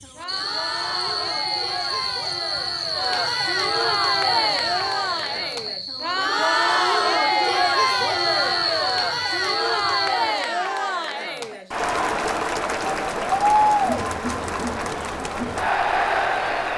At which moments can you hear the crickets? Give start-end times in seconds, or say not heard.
0.0-10.5.